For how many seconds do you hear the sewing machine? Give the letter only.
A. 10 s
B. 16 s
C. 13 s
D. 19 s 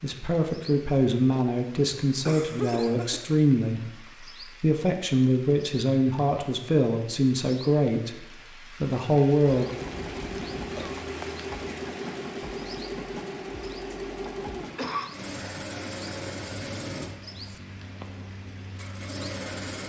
A.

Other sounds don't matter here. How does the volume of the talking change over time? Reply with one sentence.
The loudness of the talking stays about the same.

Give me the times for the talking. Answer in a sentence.
The talking can be heard from 0.0 to 4.0 s and from 4.6 to 9.7 s.